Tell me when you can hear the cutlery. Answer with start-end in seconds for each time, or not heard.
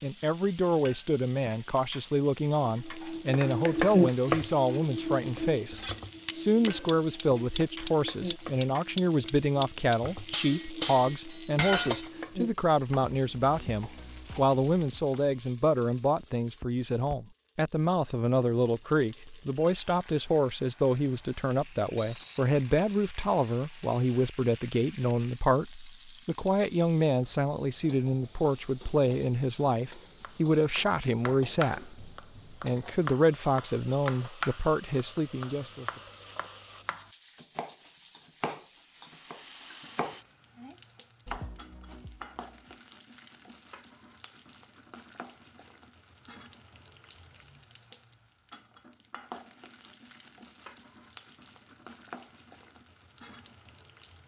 2.8-12.1.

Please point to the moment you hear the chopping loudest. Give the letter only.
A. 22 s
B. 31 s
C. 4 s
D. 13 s
C.